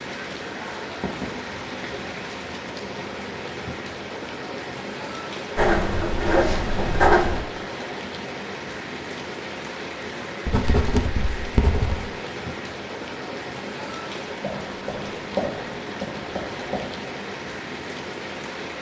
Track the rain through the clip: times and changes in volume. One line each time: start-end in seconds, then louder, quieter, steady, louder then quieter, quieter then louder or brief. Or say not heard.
0.0-18.7 steady.